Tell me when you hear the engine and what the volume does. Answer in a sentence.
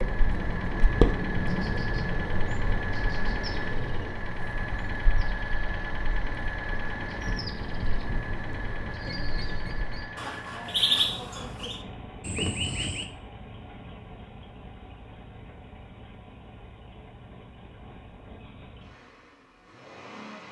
The engine can be heard from 0.0 to 20.4 s, getting quieter.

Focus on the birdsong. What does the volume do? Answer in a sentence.
The volume of the birdsong goes down, then up.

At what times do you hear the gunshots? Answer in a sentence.
You can't hear the gunshots here.